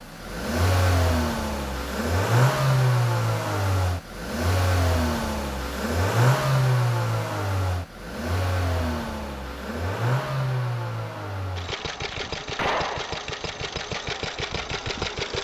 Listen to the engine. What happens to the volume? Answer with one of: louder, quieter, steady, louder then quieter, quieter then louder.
quieter.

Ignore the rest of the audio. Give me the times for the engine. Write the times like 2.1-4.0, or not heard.
0.0-15.4.